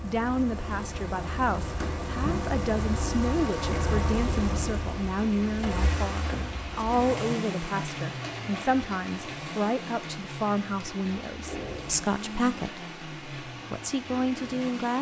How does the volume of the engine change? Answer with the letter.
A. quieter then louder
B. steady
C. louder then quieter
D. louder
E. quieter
E.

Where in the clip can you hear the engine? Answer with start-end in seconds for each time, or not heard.
0.0-14.9.